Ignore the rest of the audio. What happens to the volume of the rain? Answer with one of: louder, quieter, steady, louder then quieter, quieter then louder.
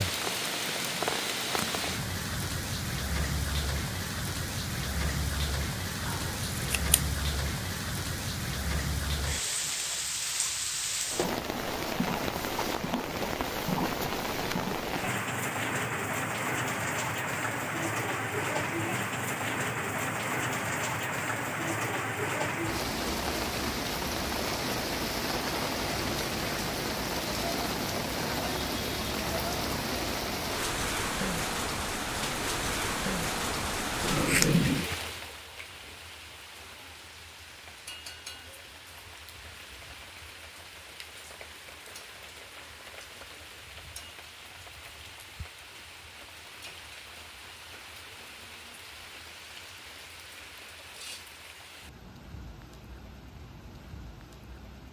quieter.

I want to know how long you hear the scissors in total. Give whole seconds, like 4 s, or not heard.
2 s.